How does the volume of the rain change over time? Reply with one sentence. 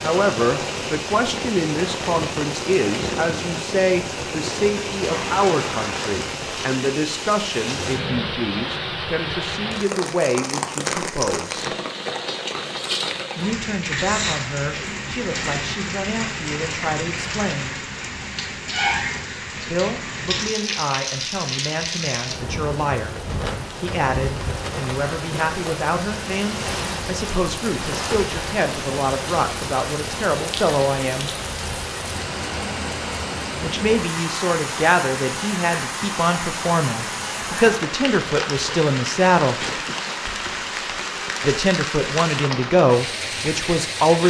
The volume of the rain stays about the same.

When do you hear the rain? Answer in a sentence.
You can hear the rain from 0.0 to 44.2 s.